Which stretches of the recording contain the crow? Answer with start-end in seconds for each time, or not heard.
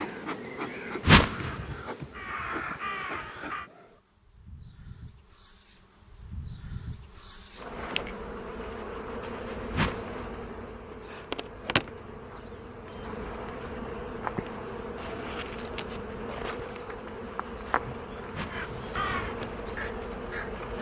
0.0-3.7, 18.5-20.7.